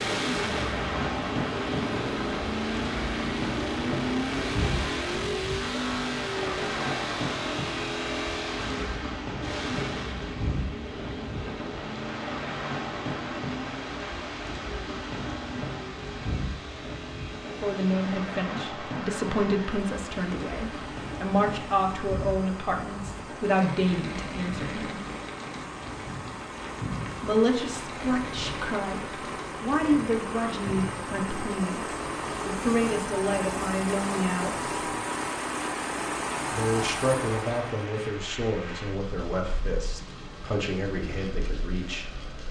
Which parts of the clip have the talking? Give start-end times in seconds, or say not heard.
17.4-25.0, 27.2-34.7, 36.5-42.0.